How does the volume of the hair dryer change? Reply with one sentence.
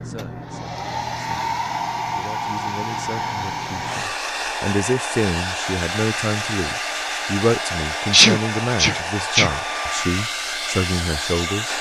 The loudness of the hair dryer stays about the same.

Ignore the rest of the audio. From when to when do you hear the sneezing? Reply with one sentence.
The sneezing can be heard from 8.1 to 9.5 s.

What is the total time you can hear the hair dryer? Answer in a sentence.
The hair dryer can be heard for 12 seconds in total.